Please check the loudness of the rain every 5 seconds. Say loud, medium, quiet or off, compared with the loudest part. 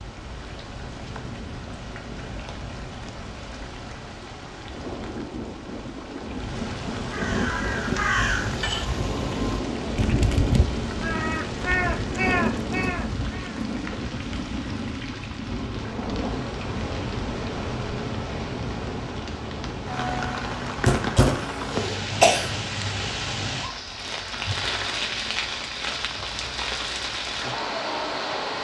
medium, loud, loud, loud, loud, loud.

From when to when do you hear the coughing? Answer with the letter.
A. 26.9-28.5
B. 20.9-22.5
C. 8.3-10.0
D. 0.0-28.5
B.